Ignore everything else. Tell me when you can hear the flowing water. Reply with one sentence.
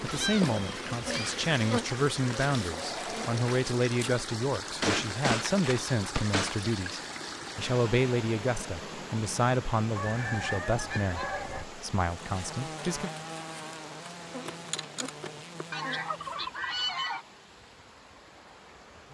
The flowing water can be heard from 0.0 to 19.0 s.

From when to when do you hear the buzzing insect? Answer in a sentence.
The buzzing insect can be heard from 0.0 to 4.2 s and from 12.2 to 16.5 s.